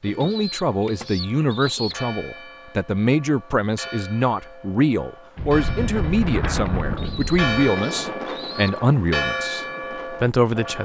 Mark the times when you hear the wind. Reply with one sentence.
You can hear the wind from 5.3 to 10.8 s.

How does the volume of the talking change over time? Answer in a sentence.
The volume of the talking stays about the same.